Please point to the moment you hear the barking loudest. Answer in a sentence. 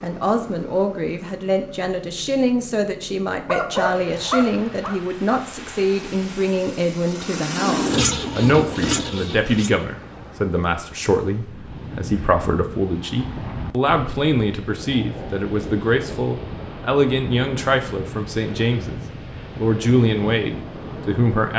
The volume of the barking peaks at 4 seconds.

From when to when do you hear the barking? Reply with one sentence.
You can hear the barking from 3.5 to 5.0 s.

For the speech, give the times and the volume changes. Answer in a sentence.
You can hear the speech from 0.0 to 21.5 s, at a steady volume.